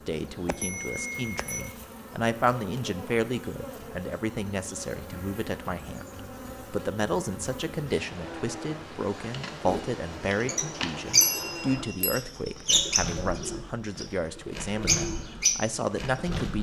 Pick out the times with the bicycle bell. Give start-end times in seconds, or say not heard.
0.5-1.8, 11.2-12.2.